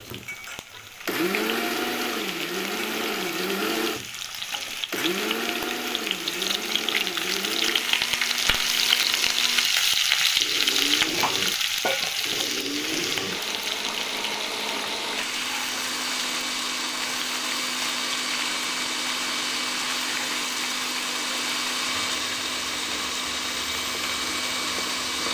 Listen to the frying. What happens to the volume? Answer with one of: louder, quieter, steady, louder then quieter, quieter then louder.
louder then quieter.